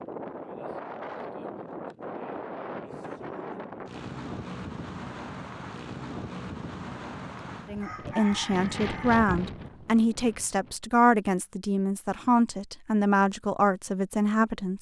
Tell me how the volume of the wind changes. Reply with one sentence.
The volume of the wind stays about the same.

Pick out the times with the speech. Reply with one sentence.
You can hear the speech from 7.7 to 14.7 s.